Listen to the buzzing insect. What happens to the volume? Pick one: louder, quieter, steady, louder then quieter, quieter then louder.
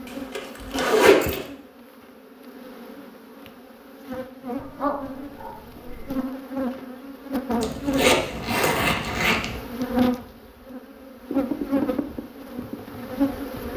louder.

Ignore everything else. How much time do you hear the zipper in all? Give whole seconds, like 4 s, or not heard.
3 s.